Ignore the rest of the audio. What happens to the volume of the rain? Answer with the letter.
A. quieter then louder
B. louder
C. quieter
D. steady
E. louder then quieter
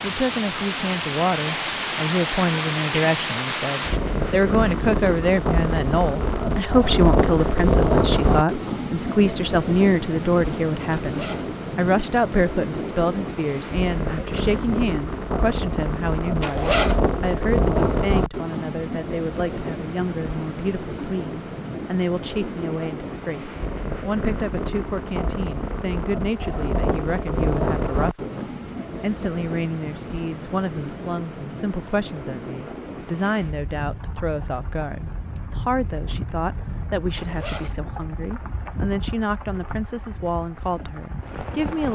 C.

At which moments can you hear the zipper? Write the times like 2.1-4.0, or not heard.
11.0-11.6, 16.4-17.1, 37.1-37.8.